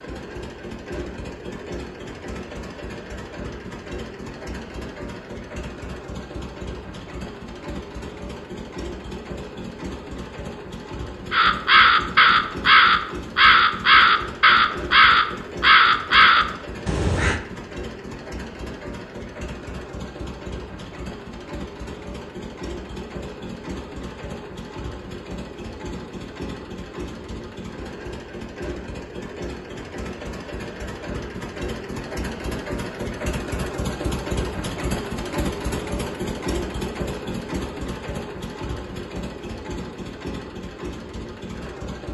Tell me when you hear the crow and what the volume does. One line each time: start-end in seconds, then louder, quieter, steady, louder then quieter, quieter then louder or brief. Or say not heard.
11.3-17.4 steady.